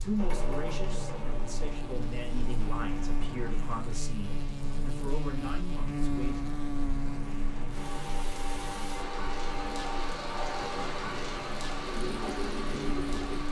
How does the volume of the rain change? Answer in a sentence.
The loudness of the rain goes up.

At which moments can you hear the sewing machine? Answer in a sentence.
The sewing machine can be heard from 0.0 to 3.5 s and from 7.8 to 13.4 s.